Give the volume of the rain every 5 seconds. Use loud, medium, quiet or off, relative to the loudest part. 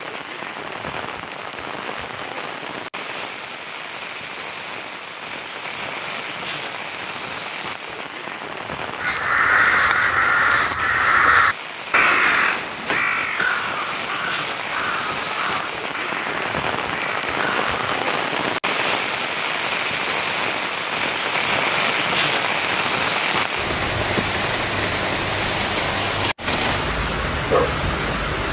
medium, medium, medium, loud, loud, loud.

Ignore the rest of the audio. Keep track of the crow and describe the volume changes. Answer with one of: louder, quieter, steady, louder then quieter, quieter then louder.
quieter.